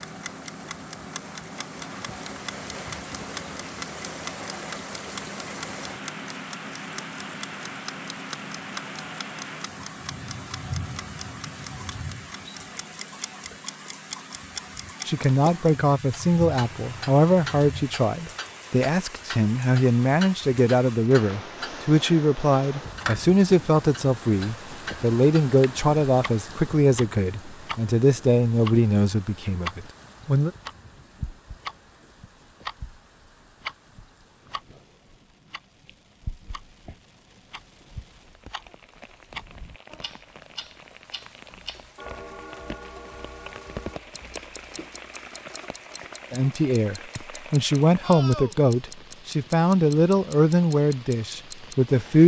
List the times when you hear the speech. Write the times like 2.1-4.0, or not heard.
15.1-30.5, 46.3-52.2.